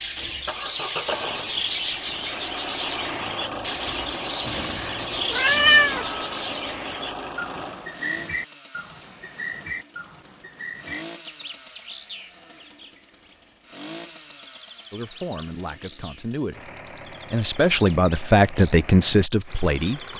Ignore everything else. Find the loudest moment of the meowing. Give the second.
6 s.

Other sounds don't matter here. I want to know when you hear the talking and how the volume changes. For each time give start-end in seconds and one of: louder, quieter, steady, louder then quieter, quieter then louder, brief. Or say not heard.
14.9-20.1 louder.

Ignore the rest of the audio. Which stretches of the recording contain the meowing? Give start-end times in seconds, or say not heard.
4.5-6.0.